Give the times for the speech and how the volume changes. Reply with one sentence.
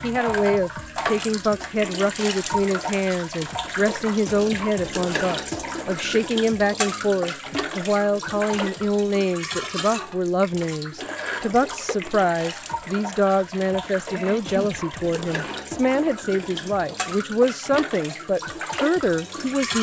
You can hear the speech from 0.0 to 19.7 s, at a steady volume.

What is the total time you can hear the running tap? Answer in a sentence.
The running tap can be heard for 20 seconds in total.